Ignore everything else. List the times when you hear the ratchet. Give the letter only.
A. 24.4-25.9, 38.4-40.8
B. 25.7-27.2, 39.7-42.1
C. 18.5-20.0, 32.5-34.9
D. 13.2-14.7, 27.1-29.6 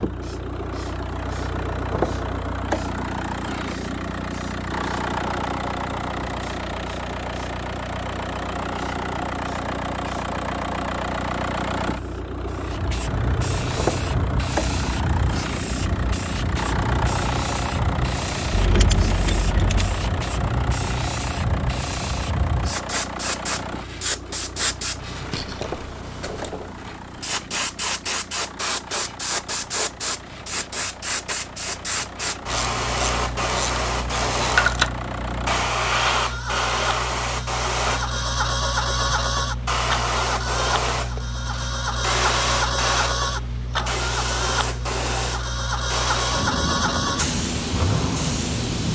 C.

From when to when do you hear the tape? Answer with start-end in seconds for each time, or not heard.
not heard.